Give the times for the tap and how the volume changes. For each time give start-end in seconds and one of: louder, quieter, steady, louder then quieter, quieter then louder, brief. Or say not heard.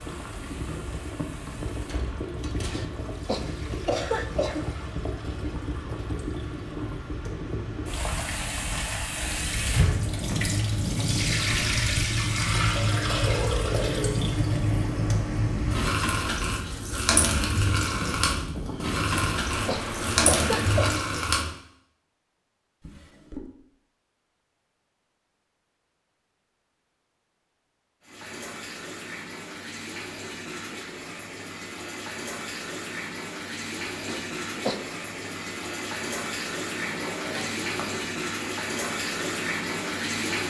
0.0-21.6 louder
28.0-40.4 louder.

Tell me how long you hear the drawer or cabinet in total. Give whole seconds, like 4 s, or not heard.
3 s.